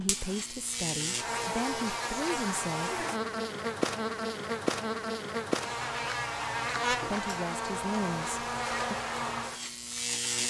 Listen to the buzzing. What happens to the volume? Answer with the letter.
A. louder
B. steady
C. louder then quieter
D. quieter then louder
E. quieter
B.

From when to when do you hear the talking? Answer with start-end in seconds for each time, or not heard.
0.0-3.0, 6.9-8.9.